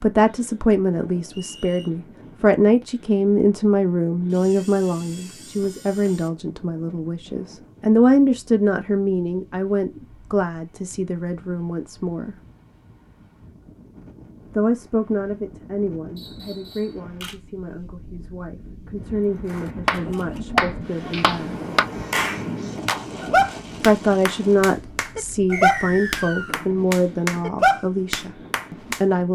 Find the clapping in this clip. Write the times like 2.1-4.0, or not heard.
19.5-29.0.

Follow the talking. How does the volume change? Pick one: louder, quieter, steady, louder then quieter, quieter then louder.
quieter then louder.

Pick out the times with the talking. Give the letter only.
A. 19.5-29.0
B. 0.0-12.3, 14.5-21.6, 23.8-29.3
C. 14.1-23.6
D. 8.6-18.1
B.